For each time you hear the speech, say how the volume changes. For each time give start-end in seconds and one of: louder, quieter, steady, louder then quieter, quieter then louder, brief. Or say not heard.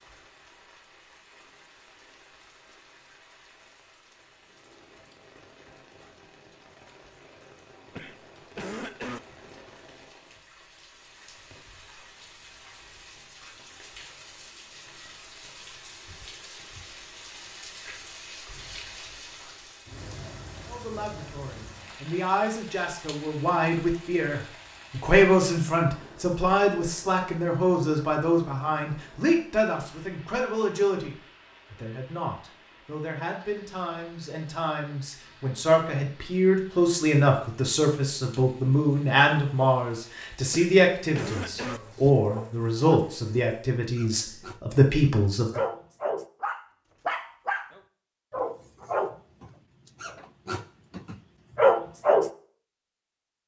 20.6-45.6 quieter then louder.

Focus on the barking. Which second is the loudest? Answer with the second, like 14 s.
52 s.